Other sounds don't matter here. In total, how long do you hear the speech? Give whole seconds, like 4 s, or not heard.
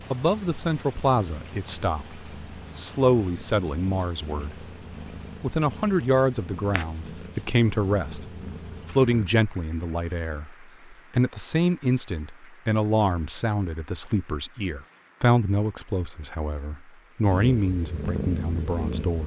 18 s.